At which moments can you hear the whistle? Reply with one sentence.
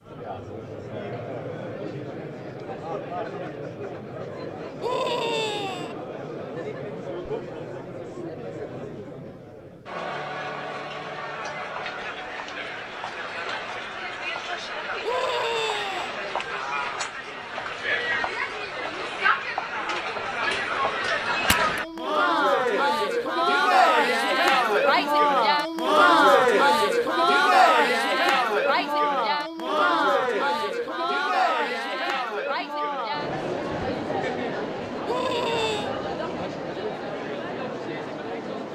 You can't hear the whistle here.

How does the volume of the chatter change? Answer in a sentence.
The volume of the chatter goes up, then down.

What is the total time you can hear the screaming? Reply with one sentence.
The screaming can be heard for 3 seconds in total.